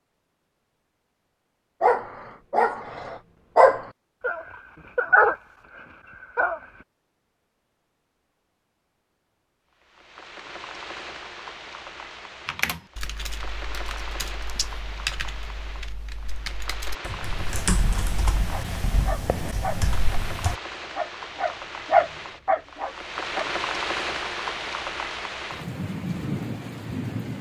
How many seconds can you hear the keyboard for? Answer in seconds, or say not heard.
8 s.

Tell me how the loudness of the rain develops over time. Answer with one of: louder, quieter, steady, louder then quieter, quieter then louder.
louder.